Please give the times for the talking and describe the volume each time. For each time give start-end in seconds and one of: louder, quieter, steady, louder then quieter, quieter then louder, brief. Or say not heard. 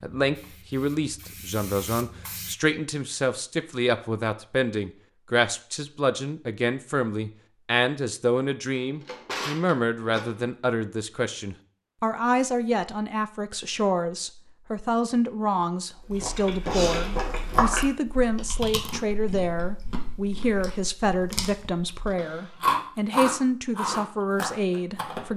0.0-25.3 steady.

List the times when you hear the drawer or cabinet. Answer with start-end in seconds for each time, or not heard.
9.0-10.6, 22.1-22.6.